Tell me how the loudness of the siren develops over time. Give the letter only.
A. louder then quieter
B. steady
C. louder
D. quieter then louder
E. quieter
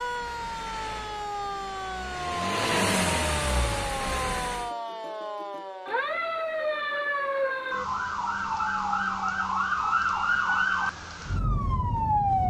C.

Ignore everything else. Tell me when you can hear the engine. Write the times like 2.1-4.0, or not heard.
0.0-4.7.